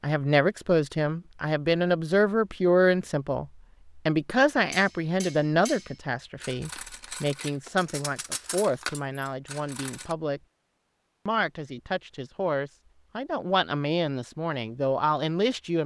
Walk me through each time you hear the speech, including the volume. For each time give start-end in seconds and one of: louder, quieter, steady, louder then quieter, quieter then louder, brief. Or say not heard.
0.0-10.4 quieter
11.2-15.8 louder.